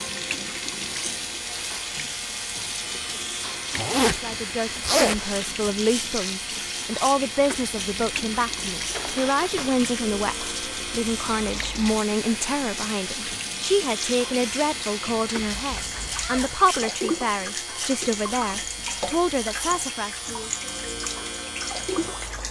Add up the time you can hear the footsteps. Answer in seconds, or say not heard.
not heard.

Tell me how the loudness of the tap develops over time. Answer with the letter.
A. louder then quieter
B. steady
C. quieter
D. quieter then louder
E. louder
B.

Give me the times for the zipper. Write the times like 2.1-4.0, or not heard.
3.7-5.7, 8.9-9.8, 15.6-16.6.